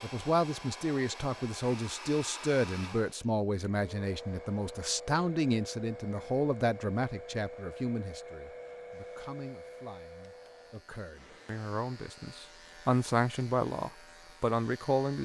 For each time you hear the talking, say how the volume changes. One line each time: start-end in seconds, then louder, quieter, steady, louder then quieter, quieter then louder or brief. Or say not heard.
0.0-15.2 quieter then louder.